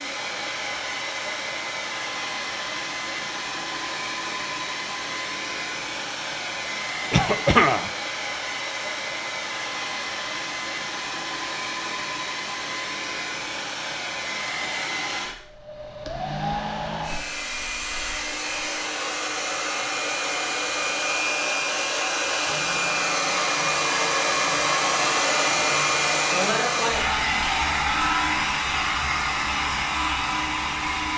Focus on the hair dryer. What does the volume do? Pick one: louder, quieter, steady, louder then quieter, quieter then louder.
louder.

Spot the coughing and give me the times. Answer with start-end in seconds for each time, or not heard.
7.1-7.9.